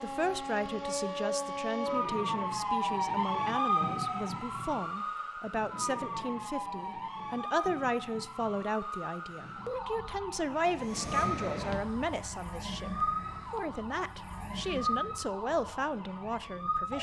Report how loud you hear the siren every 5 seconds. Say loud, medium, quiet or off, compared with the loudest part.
loud, medium, medium, medium.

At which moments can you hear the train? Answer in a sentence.
The train can be heard from 10.7 to 15.2 s.